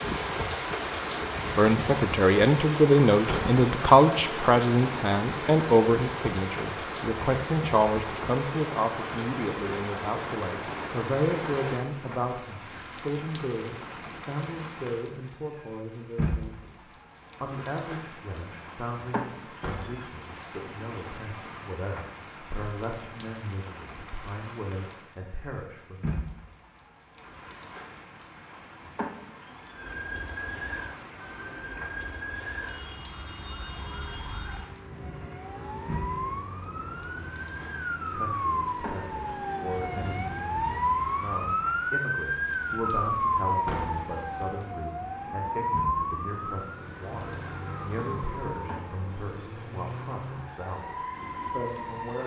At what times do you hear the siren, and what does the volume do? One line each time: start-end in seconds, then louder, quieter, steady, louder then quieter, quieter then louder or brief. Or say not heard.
29.6-52.2 louder then quieter.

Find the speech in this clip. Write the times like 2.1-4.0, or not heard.
1.6-26.1, 38.1-52.2.